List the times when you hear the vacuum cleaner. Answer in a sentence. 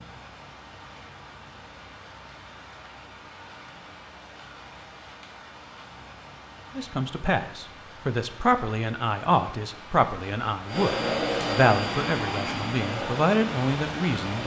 The vacuum cleaner can be heard from 10.7 to 14.4 s.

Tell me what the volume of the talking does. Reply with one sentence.
The loudness of the talking stays about the same.